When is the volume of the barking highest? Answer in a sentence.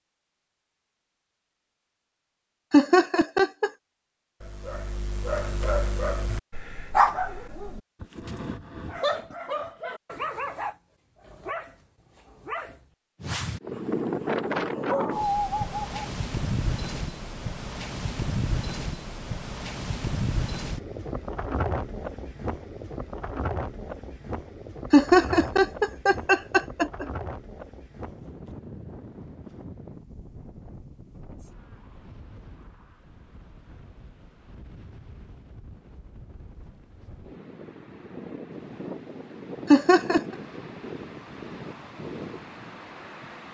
The loudest moment of the barking is at 7 seconds.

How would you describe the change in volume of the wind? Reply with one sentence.
The loudness of the wind goes down, then up.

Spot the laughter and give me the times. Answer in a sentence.
You can hear the laughter from 2.7 to 3.7 s, from 24.9 to 27.1 s and from 39.7 to 40.2 s.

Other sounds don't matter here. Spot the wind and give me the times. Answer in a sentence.
You can hear the wind from 13.6 to 43.4 s.